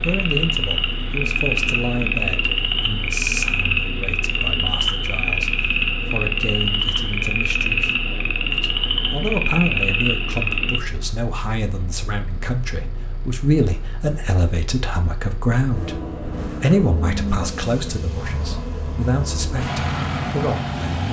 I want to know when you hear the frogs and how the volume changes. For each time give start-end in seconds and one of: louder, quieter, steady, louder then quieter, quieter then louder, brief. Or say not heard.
0.0-10.8 steady.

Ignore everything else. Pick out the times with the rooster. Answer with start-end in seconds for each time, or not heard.
not heard.